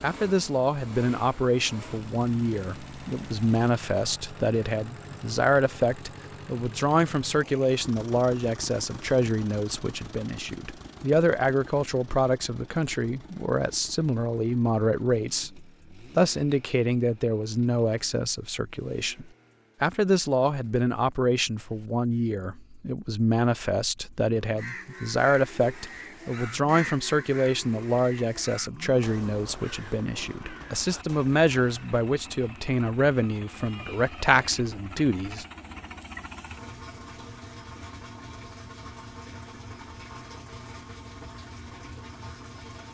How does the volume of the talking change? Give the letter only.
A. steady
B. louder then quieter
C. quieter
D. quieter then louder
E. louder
A.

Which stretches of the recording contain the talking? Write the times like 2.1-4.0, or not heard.
0.0-35.5.